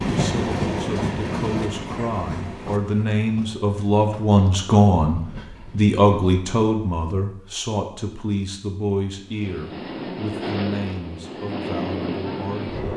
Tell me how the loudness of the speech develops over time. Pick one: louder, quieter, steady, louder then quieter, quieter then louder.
louder then quieter.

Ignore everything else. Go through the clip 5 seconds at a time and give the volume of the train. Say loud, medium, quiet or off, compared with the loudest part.
loud, medium, loud.